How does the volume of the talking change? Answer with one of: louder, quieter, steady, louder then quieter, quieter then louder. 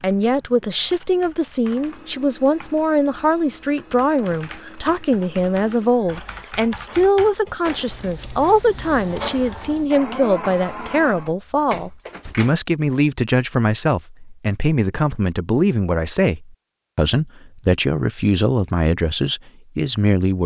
steady.